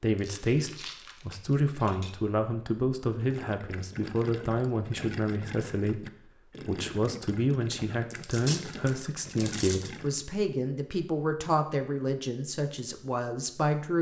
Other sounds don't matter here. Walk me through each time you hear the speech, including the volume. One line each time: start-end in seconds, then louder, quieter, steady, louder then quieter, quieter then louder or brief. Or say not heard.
0.0-13.9 steady.